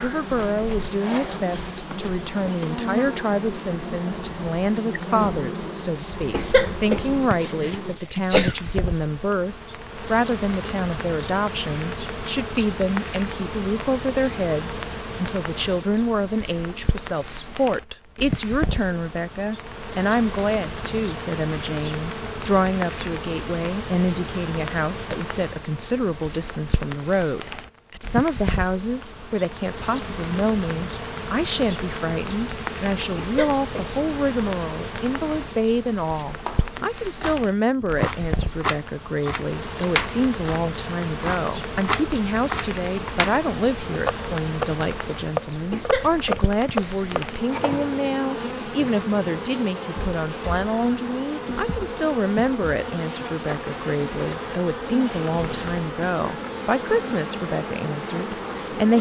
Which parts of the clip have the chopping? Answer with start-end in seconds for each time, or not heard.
36.4-48.0.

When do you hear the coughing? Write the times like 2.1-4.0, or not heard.
6.3-8.6, 33.1-33.9, 45.7-47.2.